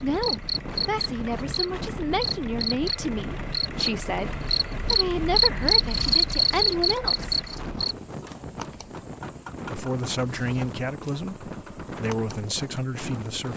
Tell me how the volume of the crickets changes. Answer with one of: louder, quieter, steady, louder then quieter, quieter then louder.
louder then quieter.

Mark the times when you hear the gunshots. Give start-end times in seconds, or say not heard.
not heard.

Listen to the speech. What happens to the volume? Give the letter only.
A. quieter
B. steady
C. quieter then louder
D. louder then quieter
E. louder
B.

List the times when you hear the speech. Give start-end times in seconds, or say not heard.
0.0-7.4, 9.7-13.5.